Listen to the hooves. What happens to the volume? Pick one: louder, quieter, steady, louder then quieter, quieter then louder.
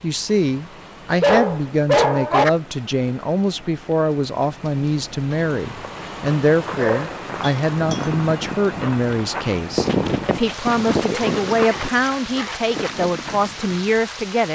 louder then quieter.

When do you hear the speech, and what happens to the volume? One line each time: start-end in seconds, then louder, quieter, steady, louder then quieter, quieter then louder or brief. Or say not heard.
0.0-14.4 steady.